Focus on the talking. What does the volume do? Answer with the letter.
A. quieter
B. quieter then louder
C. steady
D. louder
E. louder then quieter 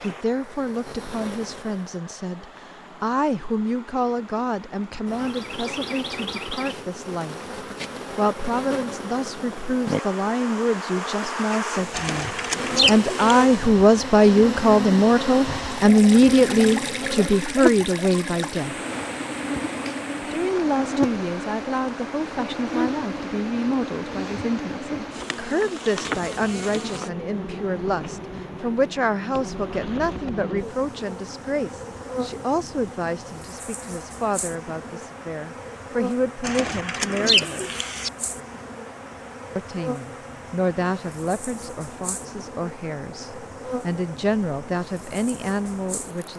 E.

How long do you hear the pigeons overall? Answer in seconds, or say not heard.
3 s.